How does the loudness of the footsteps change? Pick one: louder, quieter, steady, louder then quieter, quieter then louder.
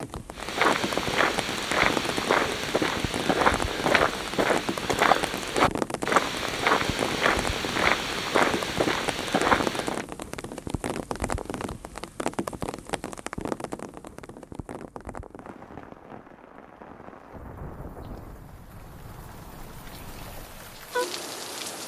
steady.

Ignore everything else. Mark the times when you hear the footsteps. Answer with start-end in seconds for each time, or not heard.
0.3-10.1.